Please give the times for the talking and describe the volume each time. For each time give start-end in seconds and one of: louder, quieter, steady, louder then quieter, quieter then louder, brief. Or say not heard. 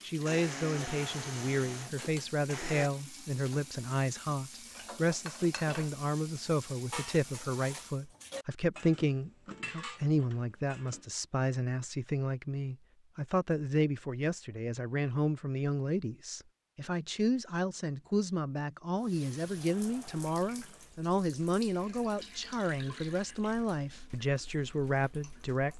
0.0-25.7 steady.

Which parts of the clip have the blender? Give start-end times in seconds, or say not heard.
0.1-2.9.